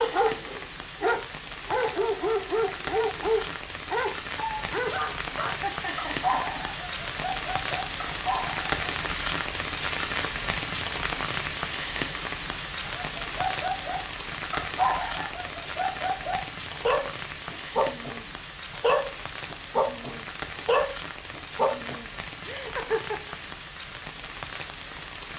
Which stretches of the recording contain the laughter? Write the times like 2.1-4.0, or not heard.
5.5-7.0, 22.4-23.4.